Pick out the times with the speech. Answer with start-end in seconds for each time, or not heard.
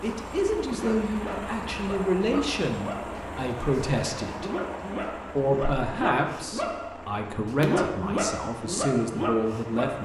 0.0-4.5, 5.3-10.0.